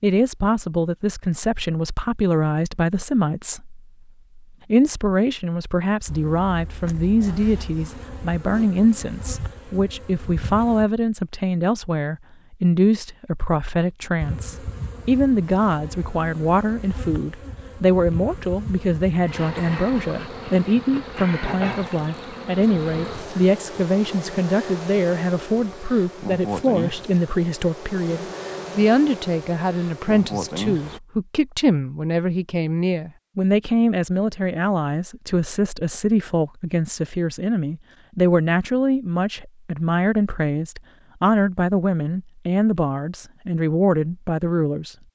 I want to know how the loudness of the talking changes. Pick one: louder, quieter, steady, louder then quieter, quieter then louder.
steady.